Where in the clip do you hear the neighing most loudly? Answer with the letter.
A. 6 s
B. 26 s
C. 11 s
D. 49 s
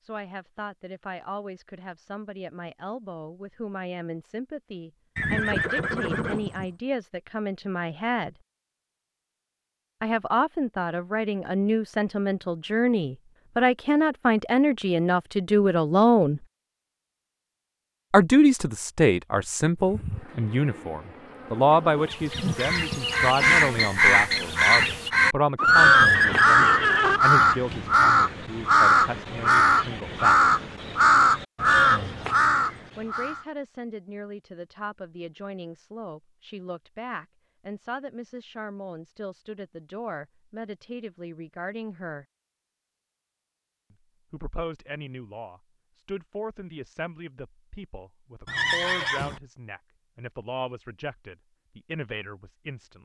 B.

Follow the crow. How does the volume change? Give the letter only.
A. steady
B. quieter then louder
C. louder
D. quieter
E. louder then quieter
A.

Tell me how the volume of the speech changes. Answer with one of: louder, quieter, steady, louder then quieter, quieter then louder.
louder then quieter.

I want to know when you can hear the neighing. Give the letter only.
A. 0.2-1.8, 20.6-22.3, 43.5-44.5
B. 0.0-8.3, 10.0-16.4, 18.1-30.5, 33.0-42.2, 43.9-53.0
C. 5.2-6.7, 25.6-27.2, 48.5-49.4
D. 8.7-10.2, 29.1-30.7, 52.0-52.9
C.